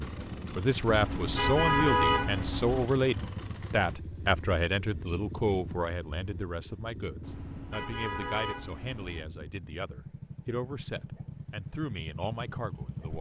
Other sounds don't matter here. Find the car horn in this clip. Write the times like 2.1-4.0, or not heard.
0.8-2.9, 7.2-9.2.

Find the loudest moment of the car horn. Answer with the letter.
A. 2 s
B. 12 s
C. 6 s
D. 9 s
A.